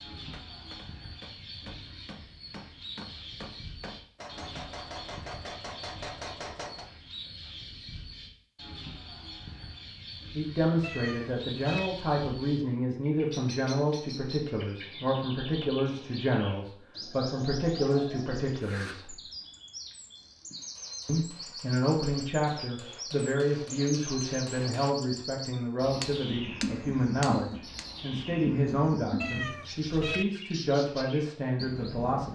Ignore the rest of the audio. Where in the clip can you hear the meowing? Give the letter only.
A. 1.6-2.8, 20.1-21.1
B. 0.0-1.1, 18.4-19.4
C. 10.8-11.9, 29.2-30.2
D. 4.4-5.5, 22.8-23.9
C.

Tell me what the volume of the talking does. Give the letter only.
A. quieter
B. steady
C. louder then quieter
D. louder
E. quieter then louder
B.